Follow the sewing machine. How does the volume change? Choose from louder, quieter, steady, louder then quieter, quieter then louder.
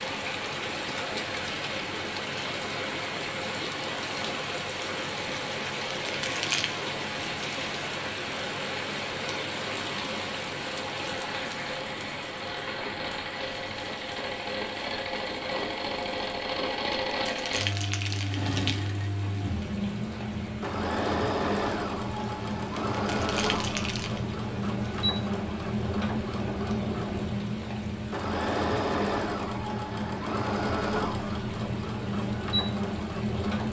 louder.